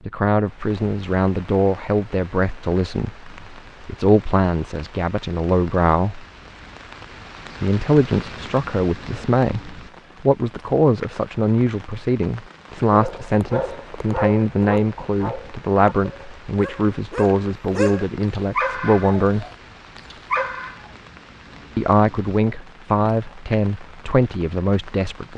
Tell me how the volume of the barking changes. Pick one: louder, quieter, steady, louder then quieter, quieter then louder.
quieter then louder.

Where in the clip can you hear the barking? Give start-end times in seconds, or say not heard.
12.9-20.9.